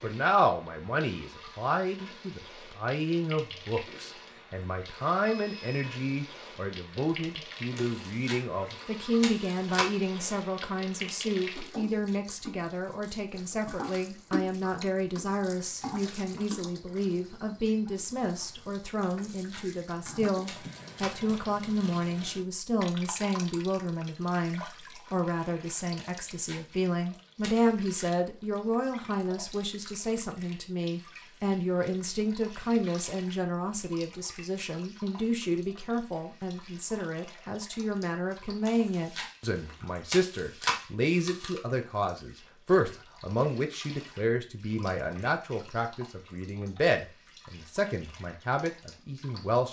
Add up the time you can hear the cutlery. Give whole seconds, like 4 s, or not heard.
not heard.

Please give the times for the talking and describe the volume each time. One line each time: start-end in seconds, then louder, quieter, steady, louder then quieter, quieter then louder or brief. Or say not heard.
0.0-49.6 steady.